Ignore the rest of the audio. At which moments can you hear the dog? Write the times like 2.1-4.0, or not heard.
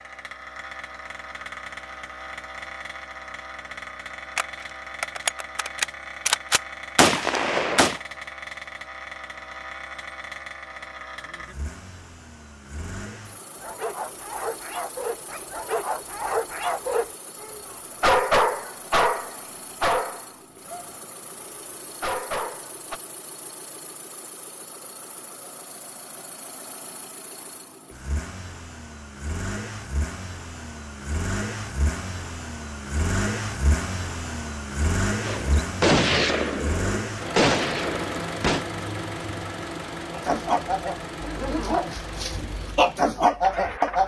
13.6-23.0, 40.1-44.0.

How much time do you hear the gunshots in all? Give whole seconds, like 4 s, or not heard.
7 s.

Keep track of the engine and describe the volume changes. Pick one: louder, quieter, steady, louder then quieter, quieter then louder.
quieter then louder.